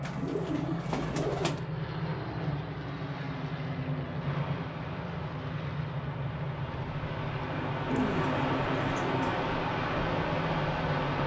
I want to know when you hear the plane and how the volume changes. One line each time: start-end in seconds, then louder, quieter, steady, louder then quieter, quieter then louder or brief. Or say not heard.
0.0-11.2 steady.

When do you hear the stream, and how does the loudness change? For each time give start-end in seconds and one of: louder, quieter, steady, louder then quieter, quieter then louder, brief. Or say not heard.
4.2-11.2 louder.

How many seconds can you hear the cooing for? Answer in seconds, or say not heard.
3 s.